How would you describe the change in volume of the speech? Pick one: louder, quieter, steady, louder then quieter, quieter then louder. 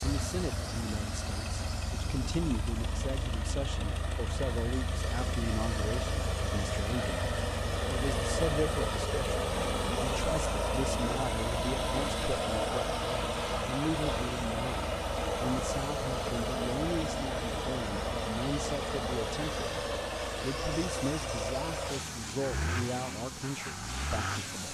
steady.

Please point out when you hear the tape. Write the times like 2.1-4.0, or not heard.
not heard.